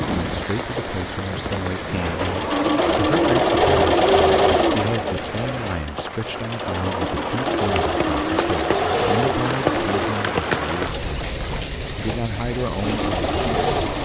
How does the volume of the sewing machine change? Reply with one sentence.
The loudness of the sewing machine goes up, then down.